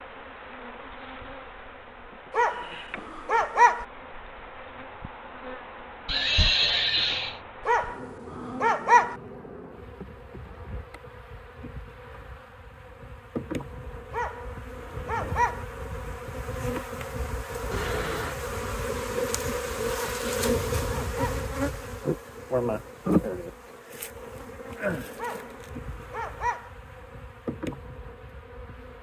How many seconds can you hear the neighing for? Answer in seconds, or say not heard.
2 s.